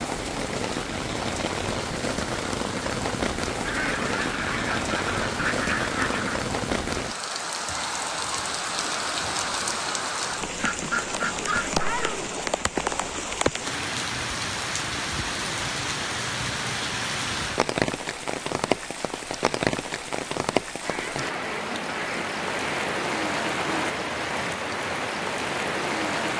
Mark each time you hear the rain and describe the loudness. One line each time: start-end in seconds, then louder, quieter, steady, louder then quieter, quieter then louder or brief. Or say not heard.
0.0-26.3 steady.